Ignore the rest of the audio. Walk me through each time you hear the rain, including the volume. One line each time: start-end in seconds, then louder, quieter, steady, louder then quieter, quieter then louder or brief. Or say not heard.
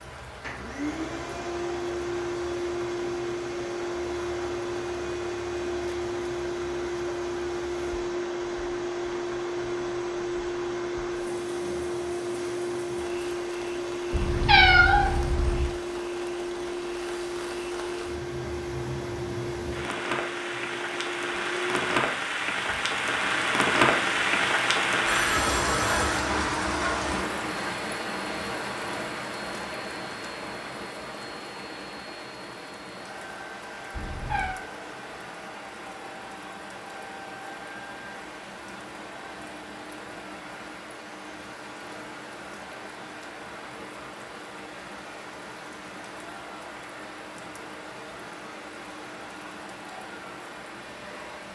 0.0-51.5 louder then quieter.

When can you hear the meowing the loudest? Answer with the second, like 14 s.
15 s.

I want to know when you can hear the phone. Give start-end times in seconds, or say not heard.
25.1-26.2.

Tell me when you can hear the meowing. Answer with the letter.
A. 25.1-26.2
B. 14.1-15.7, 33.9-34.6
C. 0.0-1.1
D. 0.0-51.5
B.